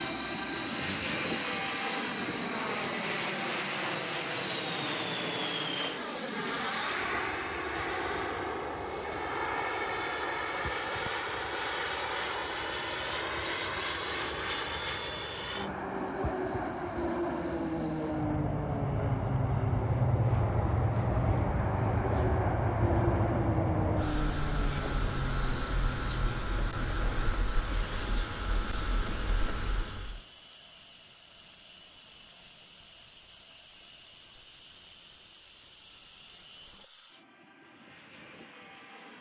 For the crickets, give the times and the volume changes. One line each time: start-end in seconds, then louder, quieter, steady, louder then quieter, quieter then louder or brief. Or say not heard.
0.0-30.2 quieter then louder.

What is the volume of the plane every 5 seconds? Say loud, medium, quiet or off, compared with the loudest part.
loud, loud, loud, loud, loud, medium, quiet, quiet.